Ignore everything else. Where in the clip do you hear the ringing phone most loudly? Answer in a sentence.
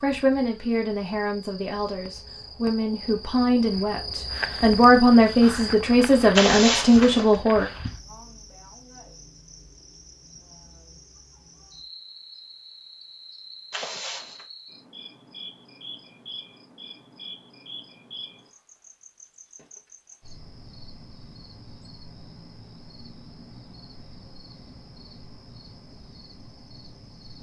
The volume of the ringing phone peaks at 7 seconds.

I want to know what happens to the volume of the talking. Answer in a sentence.
The volume of the talking goes up.